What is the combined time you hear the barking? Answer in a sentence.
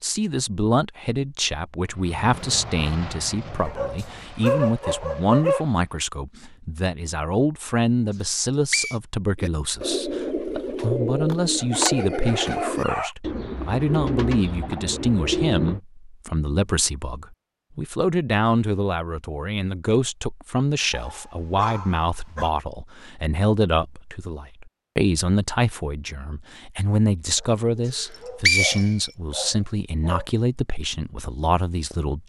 The barking can be heard for 8 seconds in total.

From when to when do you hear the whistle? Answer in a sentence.
The whistle can be heard from 8.2 to 8.9 s and from 28.0 to 29.1 s.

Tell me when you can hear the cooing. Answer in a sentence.
The cooing can be heard from 9.3 to 15.8 s.